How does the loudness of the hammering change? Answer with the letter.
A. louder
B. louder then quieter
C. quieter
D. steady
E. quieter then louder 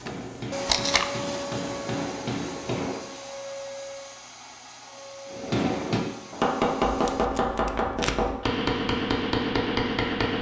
A.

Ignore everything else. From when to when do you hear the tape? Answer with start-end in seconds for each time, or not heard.
0.7-1.1, 6.8-8.3.